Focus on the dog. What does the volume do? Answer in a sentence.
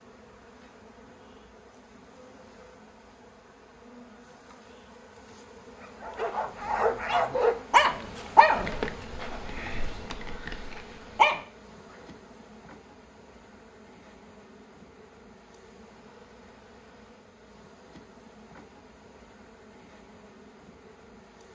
The volume of the dog goes up, then down.